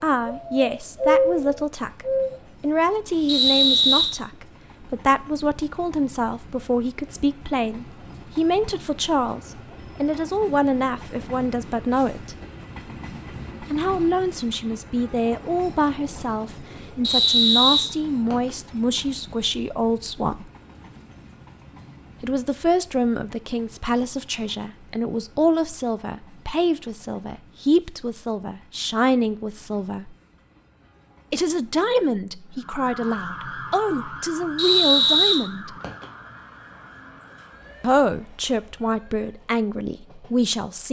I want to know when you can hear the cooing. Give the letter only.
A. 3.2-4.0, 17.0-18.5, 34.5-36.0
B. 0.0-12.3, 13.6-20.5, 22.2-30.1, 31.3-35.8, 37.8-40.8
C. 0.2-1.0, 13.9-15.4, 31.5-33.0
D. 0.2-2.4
D.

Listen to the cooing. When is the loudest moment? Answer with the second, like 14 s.
1 s.